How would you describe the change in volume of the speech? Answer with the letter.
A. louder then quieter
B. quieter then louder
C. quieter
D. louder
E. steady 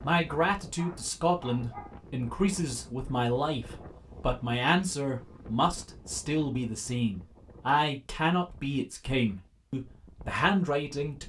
E.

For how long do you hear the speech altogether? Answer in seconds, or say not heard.
11 s.